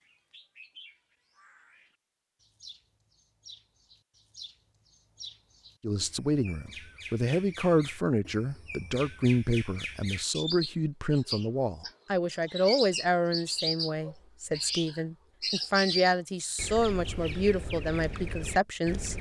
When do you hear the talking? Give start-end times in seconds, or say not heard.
5.8-19.1.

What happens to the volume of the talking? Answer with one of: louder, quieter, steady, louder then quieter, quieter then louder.
steady.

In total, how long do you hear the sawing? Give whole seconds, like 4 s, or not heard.
not heard.